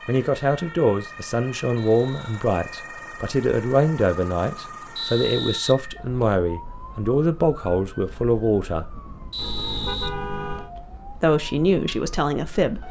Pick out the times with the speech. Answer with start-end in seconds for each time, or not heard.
0.1-9.0, 11.1-12.8.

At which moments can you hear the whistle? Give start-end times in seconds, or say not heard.
1.8-2.5, 5.0-6.2, 9.3-10.8.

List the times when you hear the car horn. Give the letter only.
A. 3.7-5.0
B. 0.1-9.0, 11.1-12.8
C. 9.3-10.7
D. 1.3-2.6
C.